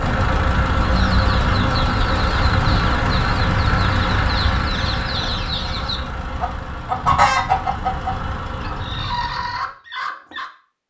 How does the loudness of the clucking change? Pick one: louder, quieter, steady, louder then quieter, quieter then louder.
louder then quieter.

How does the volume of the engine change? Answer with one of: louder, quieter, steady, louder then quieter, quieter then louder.
quieter.